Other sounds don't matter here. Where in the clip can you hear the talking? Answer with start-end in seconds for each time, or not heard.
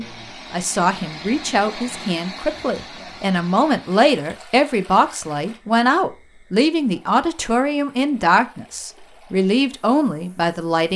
0.0-10.9.